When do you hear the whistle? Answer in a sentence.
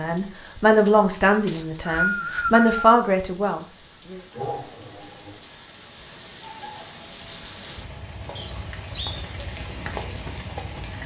The whistle can be heard from 1.4 to 2.9 s and from 8.3 to 9.2 s.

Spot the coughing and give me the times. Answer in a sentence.
The coughing can be heard from 4.3 to 5.4 s.